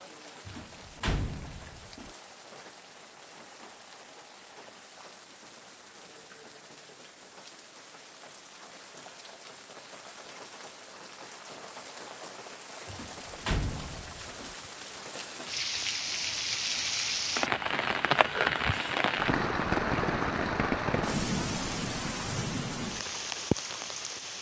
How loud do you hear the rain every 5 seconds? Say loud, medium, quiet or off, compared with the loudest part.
quiet, quiet, quiet, loud, loud.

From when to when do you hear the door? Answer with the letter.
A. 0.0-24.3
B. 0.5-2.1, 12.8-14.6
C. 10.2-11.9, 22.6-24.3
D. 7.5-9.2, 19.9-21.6
B.